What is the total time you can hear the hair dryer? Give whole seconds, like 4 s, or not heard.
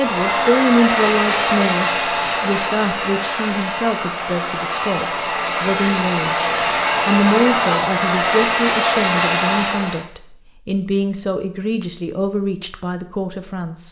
10 s.